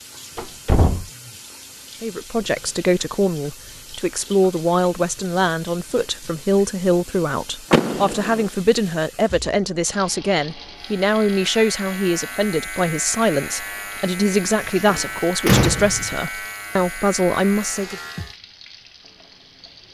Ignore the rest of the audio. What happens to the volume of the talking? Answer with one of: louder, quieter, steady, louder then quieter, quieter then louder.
steady.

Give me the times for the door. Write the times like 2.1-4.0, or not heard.
0.3-1.1, 7.7-8.5, 14.2-16.1.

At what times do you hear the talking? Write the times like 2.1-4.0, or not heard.
2.0-17.9.